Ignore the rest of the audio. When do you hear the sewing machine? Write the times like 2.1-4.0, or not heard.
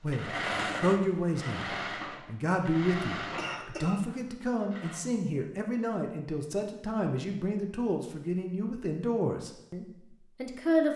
0.0-5.0.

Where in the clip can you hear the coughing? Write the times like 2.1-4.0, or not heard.
3.4-4.0.